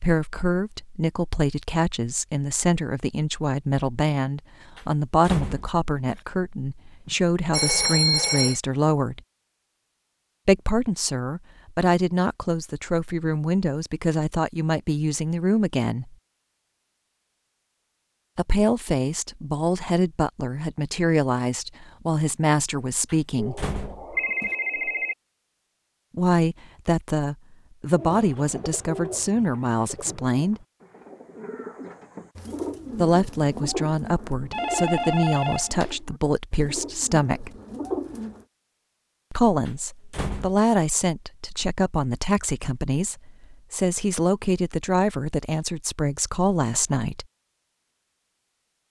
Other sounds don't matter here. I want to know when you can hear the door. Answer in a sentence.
You can hear the door from 4.8 to 6.2 s, from 23.1 to 24.6 s and from 39.6 to 40.6 s.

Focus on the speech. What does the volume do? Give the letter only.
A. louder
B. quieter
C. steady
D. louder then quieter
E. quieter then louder
C.